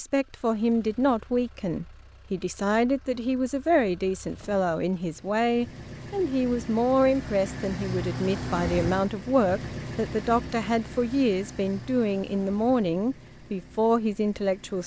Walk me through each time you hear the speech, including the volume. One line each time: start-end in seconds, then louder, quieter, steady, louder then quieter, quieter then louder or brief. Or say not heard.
0.0-14.8 steady.